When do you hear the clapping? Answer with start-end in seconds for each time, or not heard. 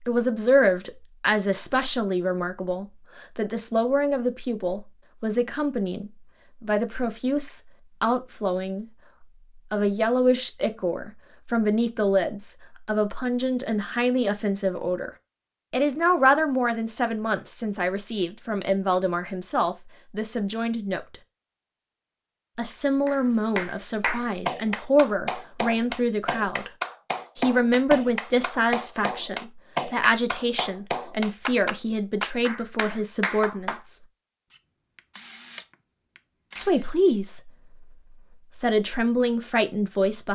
23.1-33.8.